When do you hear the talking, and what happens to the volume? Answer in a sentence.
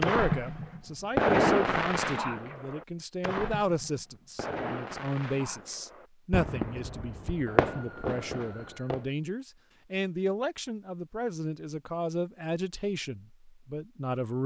You can hear the talking from 0.0 to 14.4 s, at a steady volume.